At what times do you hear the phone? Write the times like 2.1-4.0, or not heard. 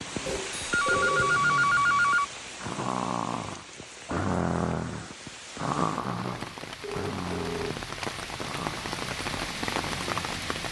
0.2-2.2, 6.8-7.8.